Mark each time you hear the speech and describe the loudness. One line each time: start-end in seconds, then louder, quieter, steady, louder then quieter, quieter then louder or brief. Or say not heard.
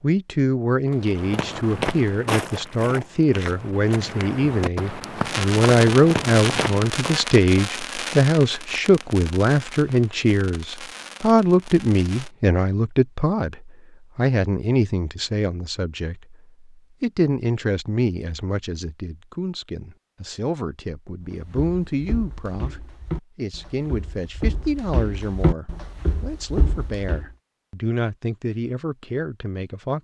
0.0-30.0 quieter.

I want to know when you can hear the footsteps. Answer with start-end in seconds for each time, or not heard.
1.1-7.2, 21.5-27.2.